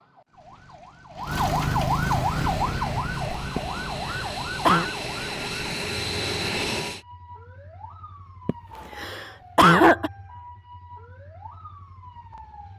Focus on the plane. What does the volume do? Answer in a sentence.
The loudness of the plane goes up.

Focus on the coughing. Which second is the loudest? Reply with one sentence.
The volume of the coughing peaks at 10 seconds.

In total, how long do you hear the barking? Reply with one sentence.
You can't hear the barking here.